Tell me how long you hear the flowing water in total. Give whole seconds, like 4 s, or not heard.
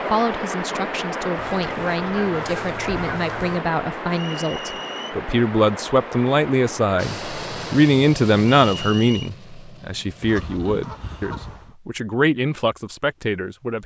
8 s.